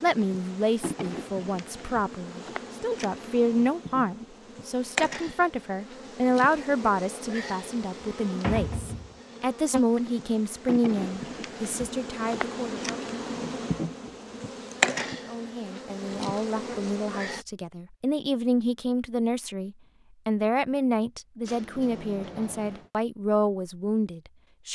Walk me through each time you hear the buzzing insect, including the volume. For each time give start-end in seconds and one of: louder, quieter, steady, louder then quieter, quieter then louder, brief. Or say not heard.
0.0-17.4 louder.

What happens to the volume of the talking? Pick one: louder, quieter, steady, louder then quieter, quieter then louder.
steady.